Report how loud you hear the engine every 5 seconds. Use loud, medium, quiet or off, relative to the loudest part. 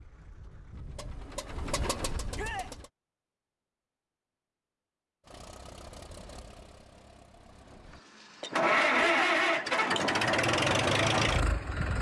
quiet, loud, loud.